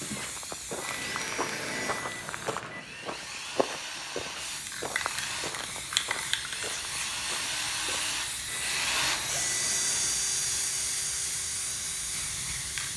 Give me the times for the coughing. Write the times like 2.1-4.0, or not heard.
not heard.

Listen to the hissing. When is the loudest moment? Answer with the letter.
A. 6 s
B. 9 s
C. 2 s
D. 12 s
A.